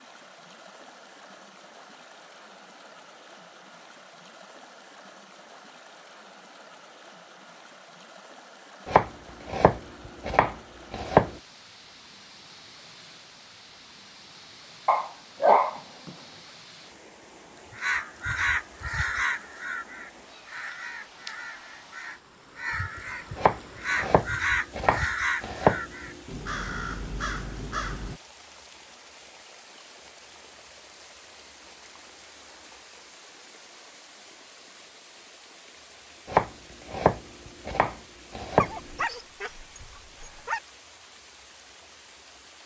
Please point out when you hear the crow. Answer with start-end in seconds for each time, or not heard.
17.7-28.2.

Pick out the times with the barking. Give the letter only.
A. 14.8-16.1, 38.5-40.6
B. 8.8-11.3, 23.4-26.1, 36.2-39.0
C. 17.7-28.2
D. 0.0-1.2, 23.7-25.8
A.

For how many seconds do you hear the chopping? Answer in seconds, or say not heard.
8 s.